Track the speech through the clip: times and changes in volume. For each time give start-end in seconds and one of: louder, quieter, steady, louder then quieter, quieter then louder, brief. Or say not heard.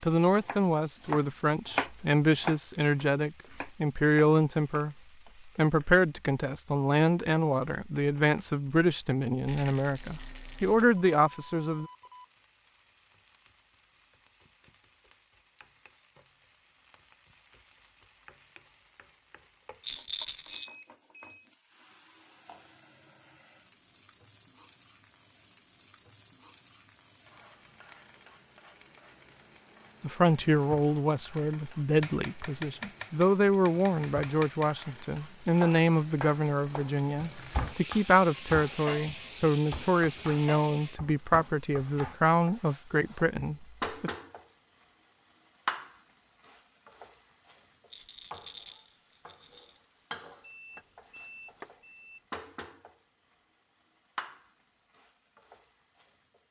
0.0-11.9 steady
30.0-44.1 steady.